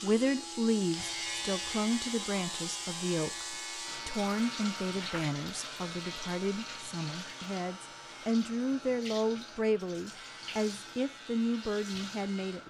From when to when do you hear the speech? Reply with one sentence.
The speech can be heard from 0.0 to 12.6 s.